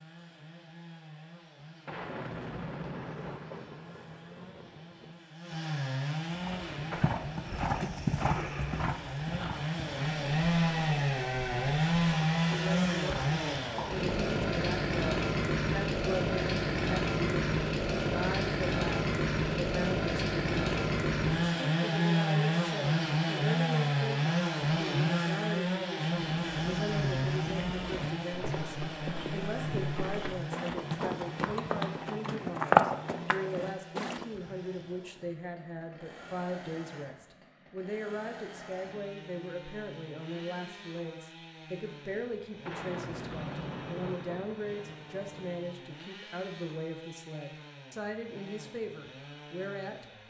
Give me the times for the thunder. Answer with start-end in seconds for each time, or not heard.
1.9-5.2, 42.6-45.6.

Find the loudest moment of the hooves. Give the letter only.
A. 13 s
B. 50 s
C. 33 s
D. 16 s
C.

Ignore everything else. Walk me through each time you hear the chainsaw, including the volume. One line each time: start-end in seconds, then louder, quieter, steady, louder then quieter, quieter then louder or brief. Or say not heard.
0.0-50.2 louder then quieter.